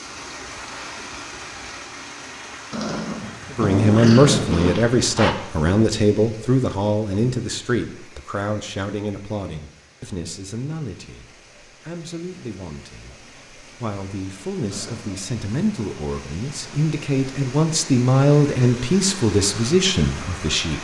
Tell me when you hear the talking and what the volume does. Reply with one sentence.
You can hear the talking from 3.5 to 20.7 s, getting quieter then louder.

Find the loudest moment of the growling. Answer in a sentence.
The volume of the growling peaks at 4 seconds.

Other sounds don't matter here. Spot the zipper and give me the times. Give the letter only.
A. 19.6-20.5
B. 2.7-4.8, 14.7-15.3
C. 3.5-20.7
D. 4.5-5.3
D.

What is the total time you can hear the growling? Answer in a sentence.
You can hear the growling for 3 seconds altogether.